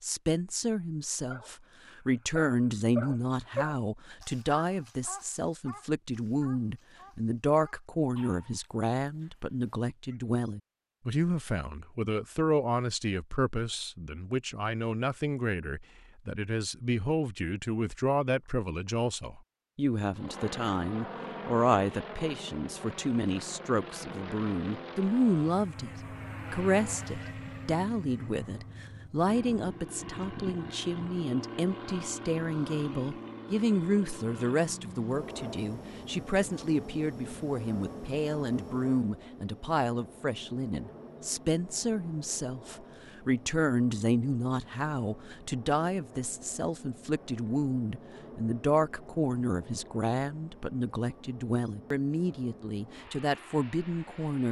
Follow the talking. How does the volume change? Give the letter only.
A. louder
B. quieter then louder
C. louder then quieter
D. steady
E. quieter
D.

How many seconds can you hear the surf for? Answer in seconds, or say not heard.
not heard.